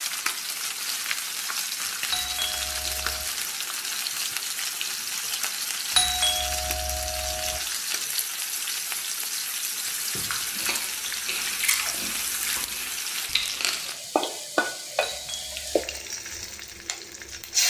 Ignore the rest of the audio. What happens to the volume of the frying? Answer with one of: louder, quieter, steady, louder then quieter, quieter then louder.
steady.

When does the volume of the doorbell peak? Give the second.
6 s.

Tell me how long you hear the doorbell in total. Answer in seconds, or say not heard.
4 s.